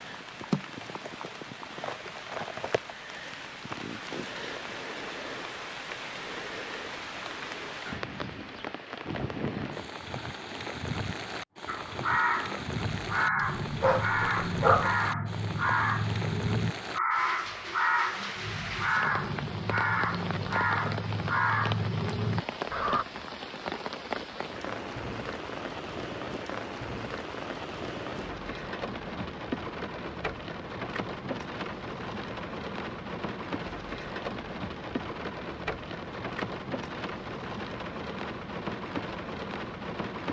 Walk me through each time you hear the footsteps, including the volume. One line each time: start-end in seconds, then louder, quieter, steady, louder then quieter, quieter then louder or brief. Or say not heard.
not heard.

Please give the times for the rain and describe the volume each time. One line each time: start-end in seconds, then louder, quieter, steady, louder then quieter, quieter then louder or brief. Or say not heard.
0.0-40.2 steady.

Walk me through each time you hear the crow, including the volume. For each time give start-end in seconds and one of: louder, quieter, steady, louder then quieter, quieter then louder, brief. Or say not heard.
11.7-23.1 steady.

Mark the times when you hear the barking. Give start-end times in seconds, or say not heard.
13.3-14.9.